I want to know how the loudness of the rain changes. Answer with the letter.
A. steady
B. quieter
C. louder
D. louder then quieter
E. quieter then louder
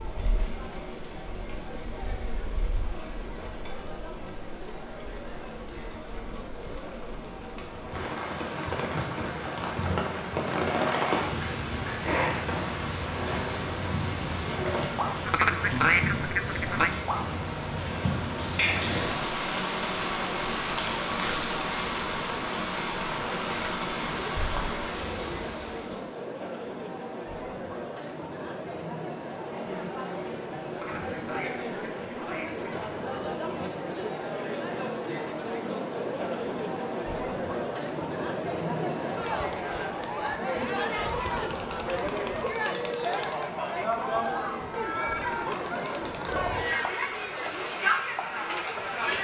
C.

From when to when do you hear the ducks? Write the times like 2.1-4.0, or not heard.
15.2-16.9, 30.7-32.7.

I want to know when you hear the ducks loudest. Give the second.
16 s.